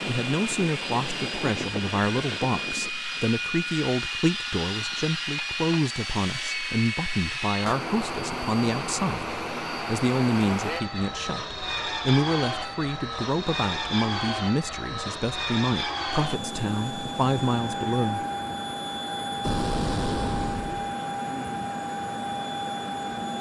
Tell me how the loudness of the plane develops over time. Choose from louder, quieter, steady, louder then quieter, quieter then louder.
steady.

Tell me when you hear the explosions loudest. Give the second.
20 s.